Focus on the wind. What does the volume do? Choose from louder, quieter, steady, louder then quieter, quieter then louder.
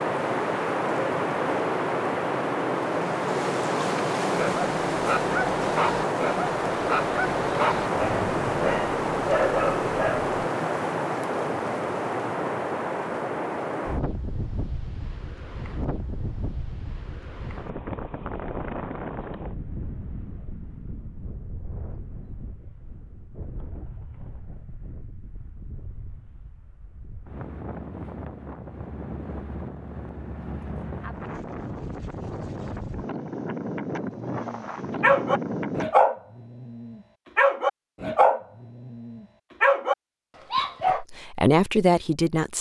quieter then louder.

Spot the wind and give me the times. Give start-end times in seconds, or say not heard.
0.0-35.9.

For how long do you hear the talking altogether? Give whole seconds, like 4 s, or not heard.
2 s.